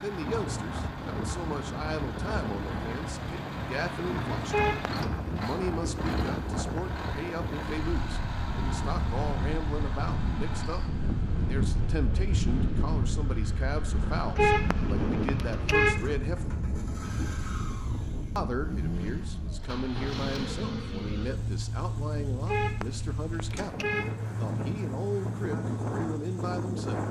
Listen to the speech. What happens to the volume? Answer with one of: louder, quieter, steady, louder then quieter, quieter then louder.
steady.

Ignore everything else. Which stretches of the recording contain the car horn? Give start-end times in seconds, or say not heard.
4.5-5.4, 14.3-16.1, 22.4-24.2.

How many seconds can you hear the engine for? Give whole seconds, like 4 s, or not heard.
27 s.